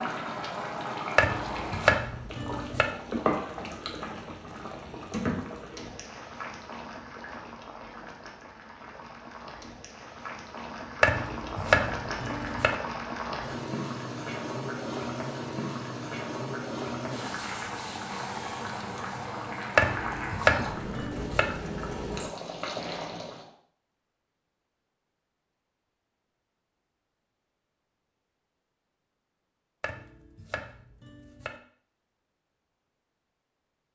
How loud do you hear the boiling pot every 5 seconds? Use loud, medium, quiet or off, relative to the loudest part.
loud, medium, loud, loud, loud, off, off.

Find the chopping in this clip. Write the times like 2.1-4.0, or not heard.
1.1-2.9, 11.0-12.8, 19.8-21.5, 29.8-31.6.